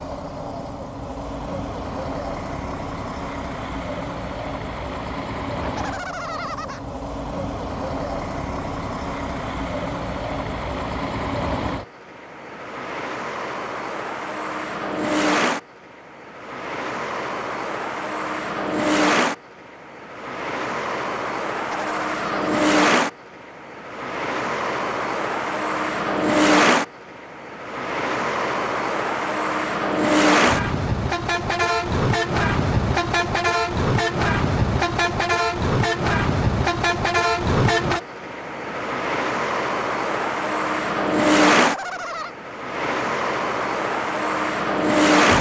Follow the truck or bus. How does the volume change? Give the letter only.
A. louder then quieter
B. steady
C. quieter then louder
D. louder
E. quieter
D.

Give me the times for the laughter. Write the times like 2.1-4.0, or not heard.
5.6-6.8, 21.6-22.6, 41.5-42.4.